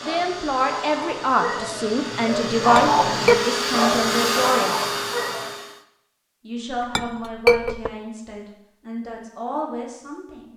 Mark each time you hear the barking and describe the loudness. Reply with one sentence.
The barking can be heard from 0.0 to 5.5 s, getting louder then quieter.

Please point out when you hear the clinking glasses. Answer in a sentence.
You can hear the clinking glasses from 2.8 to 3.4 s and from 6.7 to 7.9 s.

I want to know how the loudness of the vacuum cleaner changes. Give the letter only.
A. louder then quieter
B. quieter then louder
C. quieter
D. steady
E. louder
E.